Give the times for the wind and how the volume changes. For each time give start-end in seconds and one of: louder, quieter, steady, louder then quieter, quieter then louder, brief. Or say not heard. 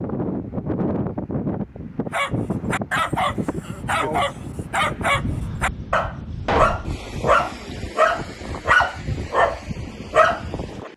0.0-10.9 quieter.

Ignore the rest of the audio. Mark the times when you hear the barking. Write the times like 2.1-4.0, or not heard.
2.1-10.9.